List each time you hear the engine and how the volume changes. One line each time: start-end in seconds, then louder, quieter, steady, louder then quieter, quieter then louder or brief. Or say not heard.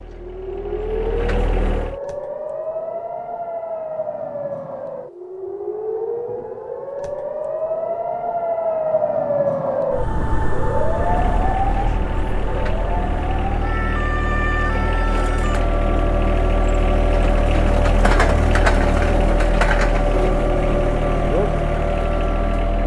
0.0-2.0 brief
10.9-22.8 louder.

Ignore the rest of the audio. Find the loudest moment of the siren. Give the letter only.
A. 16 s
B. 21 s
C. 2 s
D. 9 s
D.